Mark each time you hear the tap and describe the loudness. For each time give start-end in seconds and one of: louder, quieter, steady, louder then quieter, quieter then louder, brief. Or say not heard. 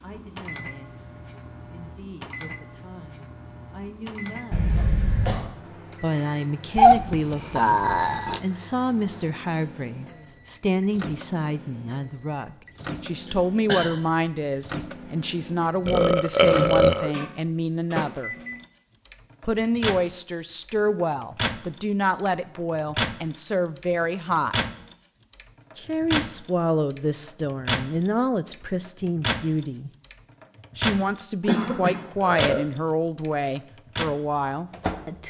not heard.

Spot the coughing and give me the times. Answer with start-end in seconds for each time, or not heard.
4.5-5.4, 12.8-13.8, 31.4-32.0.